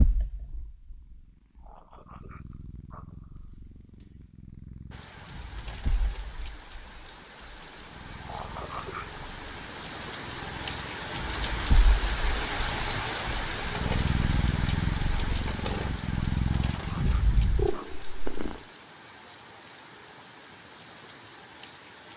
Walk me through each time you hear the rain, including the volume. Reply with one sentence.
The rain can be heard from 4.9 to 22.1 s, getting louder then quieter.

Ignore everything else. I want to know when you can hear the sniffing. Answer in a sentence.
You can hear the sniffing from 1.6 to 3.5 s, from 8.2 to 9.2 s and from 16.4 to 17.9 s.